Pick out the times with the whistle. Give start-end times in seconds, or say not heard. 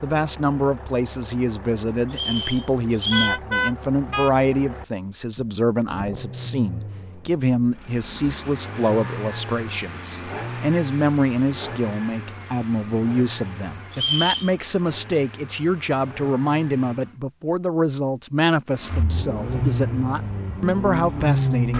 2.1-3.4, 13.9-14.5.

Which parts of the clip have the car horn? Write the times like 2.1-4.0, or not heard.
3.1-4.3.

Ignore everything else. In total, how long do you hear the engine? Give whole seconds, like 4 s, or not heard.
20 s.